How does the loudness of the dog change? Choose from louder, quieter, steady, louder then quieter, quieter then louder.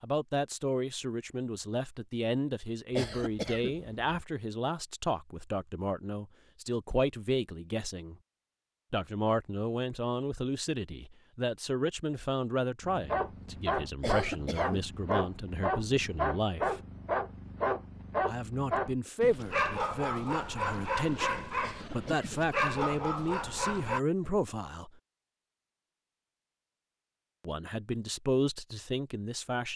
steady.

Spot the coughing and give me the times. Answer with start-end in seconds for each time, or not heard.
2.9-4.0, 14.0-14.9, 21.6-22.3.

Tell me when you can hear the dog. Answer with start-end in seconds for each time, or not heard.
12.8-24.0.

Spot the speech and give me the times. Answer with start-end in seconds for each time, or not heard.
0.0-8.2, 8.9-16.8, 18.2-24.9, 27.4-29.7.